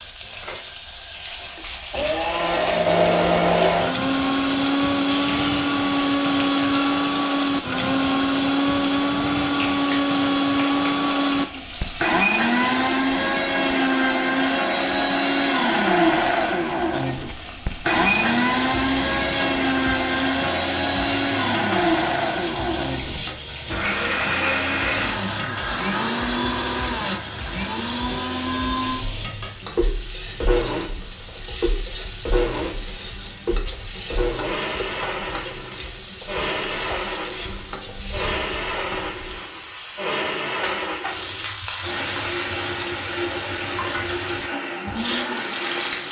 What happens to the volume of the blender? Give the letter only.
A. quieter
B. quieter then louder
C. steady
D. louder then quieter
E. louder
A.